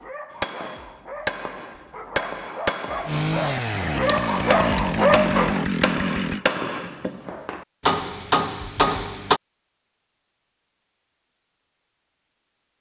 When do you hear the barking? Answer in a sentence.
The barking can be heard from 0.0 to 5.7 s.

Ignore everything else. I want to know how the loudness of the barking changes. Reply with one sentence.
The volume of the barking goes up.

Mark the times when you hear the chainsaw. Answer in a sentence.
You can hear the chainsaw from 3.0 to 6.5 s.